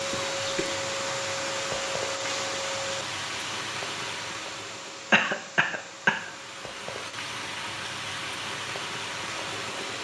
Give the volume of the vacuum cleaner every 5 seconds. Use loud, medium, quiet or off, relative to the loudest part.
loud, medium.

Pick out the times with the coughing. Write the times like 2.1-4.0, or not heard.
0.1-0.8, 5.1-6.3.